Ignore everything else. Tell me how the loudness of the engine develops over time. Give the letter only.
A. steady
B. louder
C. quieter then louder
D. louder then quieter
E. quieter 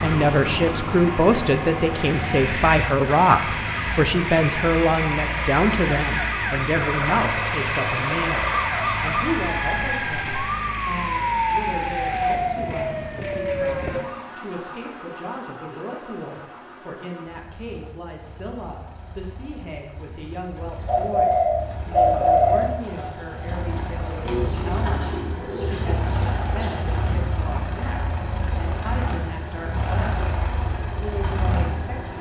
C.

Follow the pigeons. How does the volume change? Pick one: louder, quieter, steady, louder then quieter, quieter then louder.
quieter.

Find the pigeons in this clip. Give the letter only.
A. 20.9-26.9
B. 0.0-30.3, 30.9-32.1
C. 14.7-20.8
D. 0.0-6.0
A.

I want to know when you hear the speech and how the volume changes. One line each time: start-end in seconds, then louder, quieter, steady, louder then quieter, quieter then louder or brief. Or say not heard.
0.0-30.3 quieter
30.9-32.1 brief.